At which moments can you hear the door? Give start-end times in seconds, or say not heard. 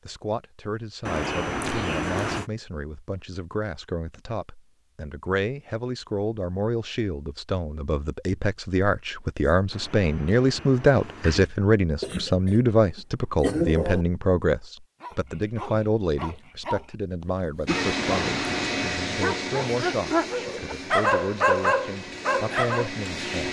1.1-2.5, 9.7-11.5, 17.9-18.8.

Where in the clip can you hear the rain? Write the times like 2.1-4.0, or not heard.
not heard.